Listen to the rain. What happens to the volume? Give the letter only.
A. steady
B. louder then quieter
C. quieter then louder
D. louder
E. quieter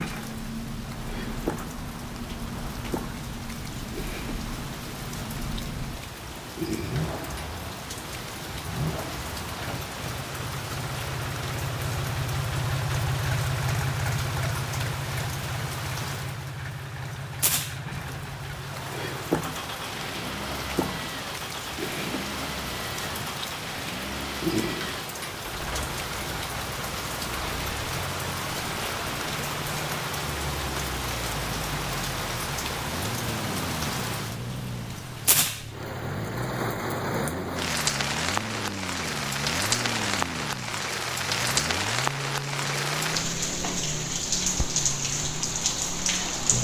D.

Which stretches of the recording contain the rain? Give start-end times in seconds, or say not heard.
0.0-46.5.